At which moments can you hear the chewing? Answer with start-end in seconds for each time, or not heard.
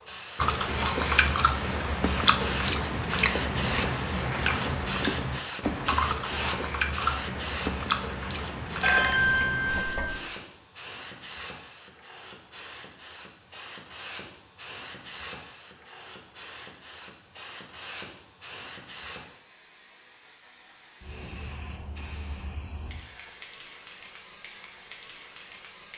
0.3-9.8.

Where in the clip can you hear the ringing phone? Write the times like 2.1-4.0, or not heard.
8.8-10.2.